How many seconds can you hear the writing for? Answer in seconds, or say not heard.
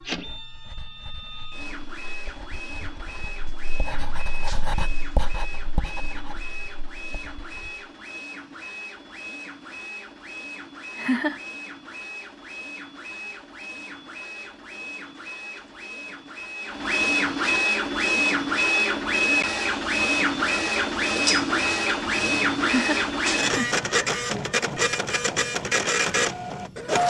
8 s.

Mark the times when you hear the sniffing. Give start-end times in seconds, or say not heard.
not heard.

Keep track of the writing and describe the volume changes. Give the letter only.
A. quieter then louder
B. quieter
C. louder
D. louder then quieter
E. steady
D.